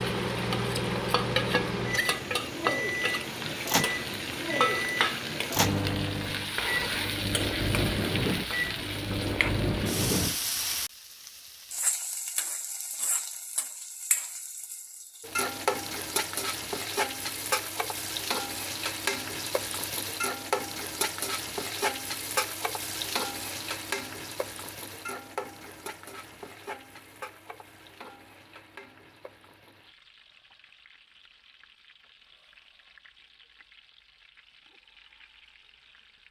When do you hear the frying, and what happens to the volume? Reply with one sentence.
The frying can be heard from 0.0 to 36.2 s, getting quieter.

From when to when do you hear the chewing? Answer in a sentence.
The chewing can't be heard in this clip.